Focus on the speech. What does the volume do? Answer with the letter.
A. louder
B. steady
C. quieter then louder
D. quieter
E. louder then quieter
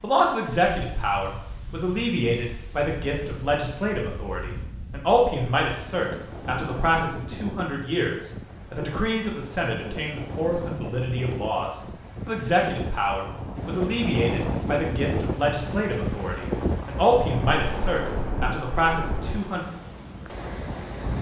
B.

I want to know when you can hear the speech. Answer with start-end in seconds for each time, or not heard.
0.0-19.6.